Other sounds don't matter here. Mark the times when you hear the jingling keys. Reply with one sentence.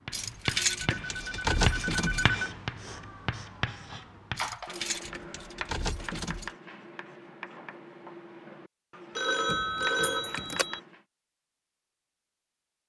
The jingling keys can be heard from 0.1 to 2.4 s, from 4.3 to 6.5 s and from 9.4 to 10.7 s.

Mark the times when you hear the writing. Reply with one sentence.
You can hear the writing from 0.1 to 11.0 s.